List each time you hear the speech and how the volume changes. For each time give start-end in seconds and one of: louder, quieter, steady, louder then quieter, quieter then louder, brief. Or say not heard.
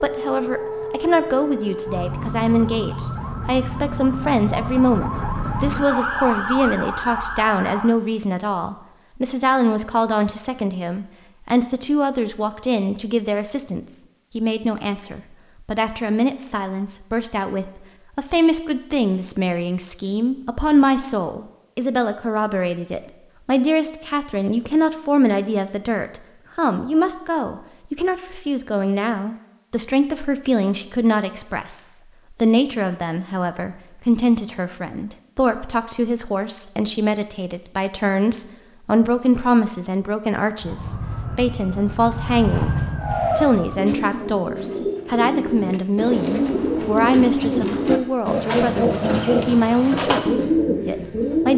0.0-51.5 steady.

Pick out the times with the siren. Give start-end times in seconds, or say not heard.
0.0-8.0, 40.6-43.9.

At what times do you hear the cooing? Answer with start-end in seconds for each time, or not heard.
43.0-51.5.